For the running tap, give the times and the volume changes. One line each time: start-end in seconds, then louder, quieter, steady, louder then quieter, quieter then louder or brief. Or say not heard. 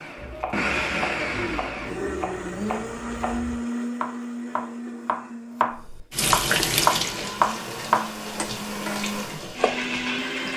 6.1-10.5 quieter.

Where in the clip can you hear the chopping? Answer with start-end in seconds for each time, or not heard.
0.1-9.9.